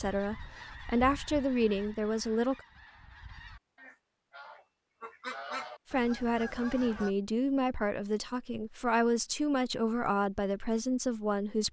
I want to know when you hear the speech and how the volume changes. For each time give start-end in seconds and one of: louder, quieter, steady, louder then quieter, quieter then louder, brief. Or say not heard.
0.0-2.6 brief
5.9-11.6 steady.